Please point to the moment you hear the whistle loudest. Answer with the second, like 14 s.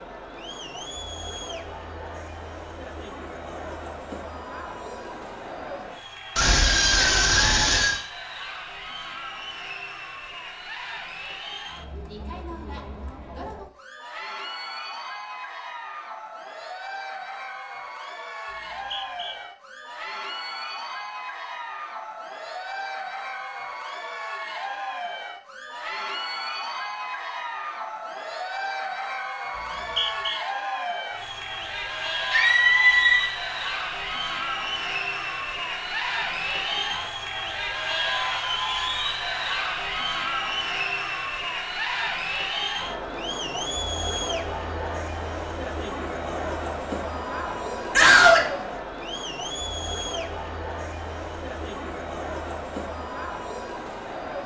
30 s.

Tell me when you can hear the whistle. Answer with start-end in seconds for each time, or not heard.
18.5-19.4, 29.6-30.4.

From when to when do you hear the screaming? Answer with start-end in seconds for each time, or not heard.
6.3-8.0, 32.3-33.3, 48.0-48.5.